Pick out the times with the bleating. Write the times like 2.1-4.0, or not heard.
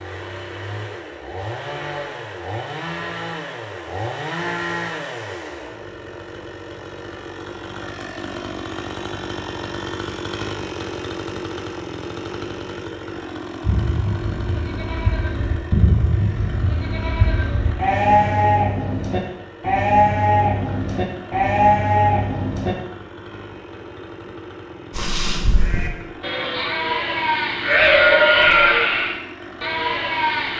13.6-22.8, 24.9-30.5.